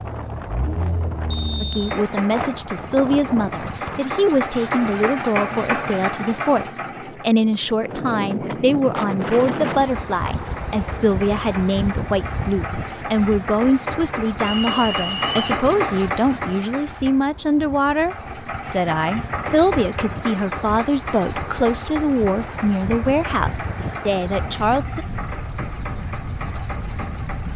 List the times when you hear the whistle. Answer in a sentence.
You can hear the whistle from 1.3 to 2.0 s and from 14.4 to 15.4 s.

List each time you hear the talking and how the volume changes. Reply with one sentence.
You can hear the talking from 1.6 to 25.1 s, at a steady volume.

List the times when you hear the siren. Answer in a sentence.
You can't hear the siren here.